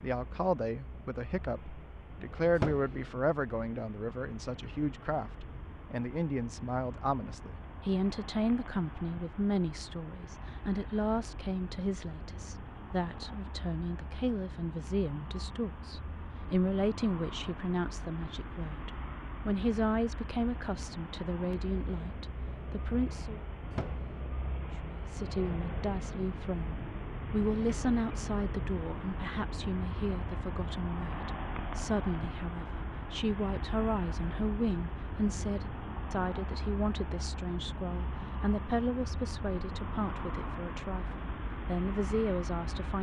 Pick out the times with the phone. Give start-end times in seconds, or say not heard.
2.5-3.0, 23.7-24.1.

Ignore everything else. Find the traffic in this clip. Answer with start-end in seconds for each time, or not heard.
0.0-42.9.